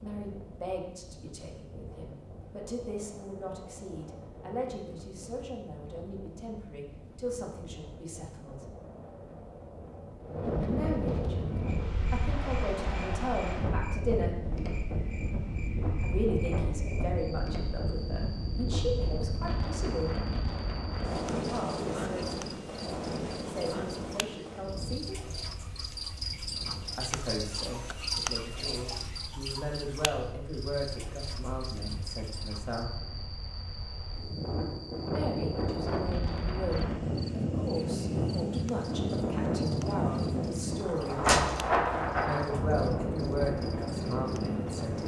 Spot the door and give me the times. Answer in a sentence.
You can hear the door from 41.2 to 42.0 s.